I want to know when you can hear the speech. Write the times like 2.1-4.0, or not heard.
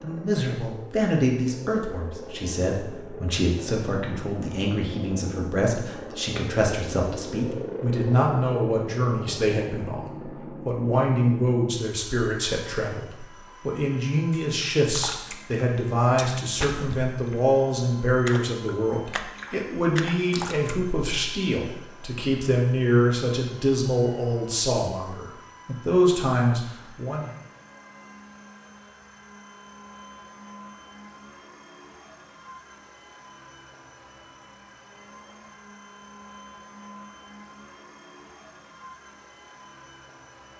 0.0-27.3.